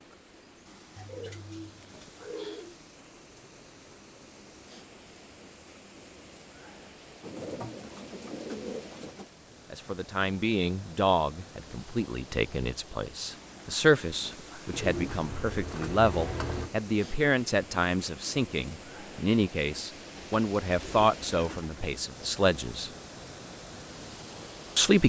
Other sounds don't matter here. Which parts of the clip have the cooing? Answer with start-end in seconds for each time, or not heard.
0.9-2.8, 7.2-9.3, 14.7-16.7, 20.1-21.9.